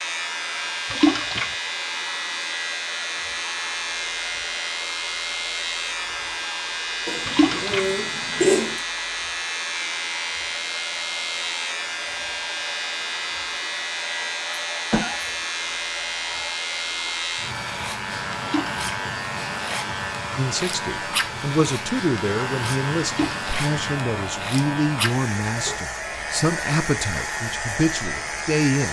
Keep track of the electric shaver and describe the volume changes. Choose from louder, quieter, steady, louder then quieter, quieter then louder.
steady.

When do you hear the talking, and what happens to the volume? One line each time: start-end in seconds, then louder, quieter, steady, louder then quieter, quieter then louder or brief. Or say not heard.
20.4-28.8 steady.